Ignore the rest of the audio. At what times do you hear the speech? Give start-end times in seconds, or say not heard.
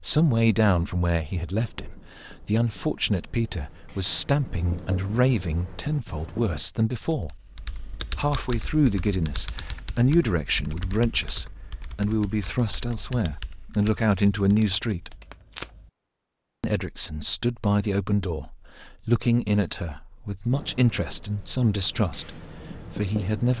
0.0-7.3, 8.1-15.2, 16.6-23.5.